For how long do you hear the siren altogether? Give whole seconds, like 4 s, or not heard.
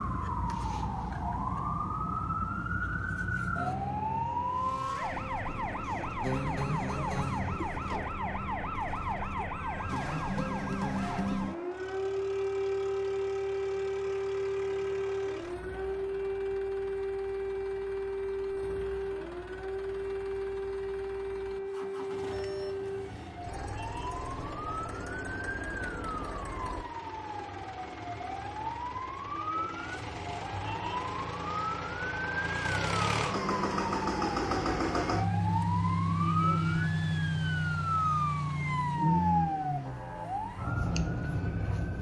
42 s.